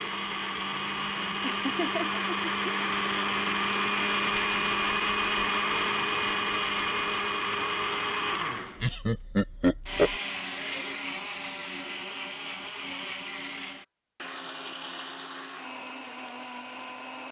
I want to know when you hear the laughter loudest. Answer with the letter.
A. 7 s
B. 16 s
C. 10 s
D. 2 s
C.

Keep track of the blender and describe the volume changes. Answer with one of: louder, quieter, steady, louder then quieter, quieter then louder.
quieter.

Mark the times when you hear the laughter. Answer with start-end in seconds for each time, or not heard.
1.4-2.7, 8.8-10.2.